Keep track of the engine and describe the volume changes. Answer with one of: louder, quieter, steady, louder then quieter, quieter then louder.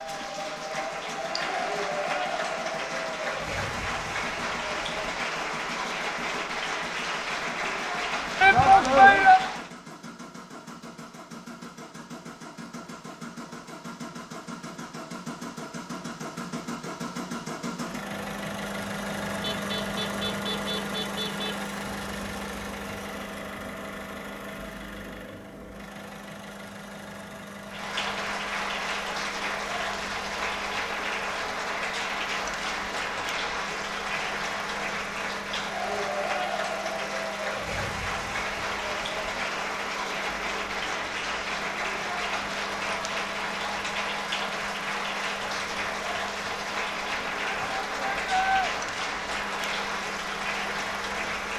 louder then quieter.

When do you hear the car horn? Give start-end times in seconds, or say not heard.
19.4-21.6.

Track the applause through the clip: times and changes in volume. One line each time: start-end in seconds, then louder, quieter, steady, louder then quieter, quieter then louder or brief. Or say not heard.
0.0-9.7 steady
27.6-51.5 steady.